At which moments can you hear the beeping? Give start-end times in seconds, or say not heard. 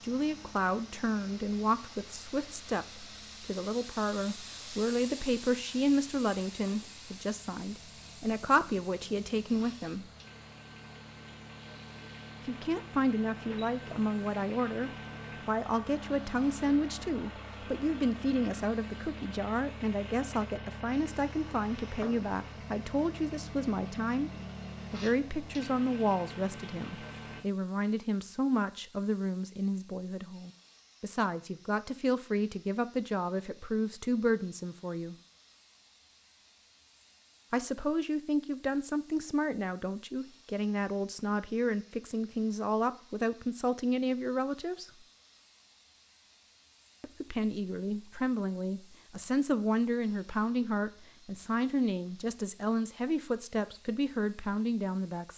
not heard.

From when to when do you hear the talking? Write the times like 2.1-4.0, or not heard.
0.0-10.1, 12.4-24.3, 24.9-35.1, 37.5-44.9, 47.0-55.3.